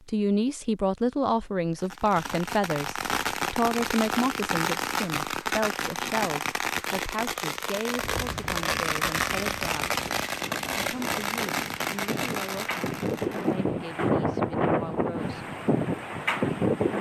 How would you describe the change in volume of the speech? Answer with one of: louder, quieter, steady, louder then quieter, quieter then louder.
quieter.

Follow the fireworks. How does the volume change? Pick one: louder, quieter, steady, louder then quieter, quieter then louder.
steady.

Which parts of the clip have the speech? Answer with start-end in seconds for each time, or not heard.
0.1-10.0, 10.8-15.5.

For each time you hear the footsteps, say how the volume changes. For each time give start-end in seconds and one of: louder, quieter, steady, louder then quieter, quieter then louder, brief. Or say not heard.
not heard.